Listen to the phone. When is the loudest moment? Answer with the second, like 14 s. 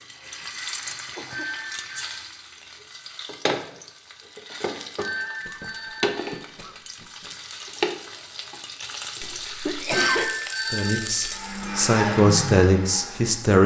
10 s.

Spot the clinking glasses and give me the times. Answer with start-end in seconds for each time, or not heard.
not heard.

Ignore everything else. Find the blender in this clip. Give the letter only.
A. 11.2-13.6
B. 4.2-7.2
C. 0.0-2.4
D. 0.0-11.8
A.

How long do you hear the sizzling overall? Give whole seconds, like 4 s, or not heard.
12 s.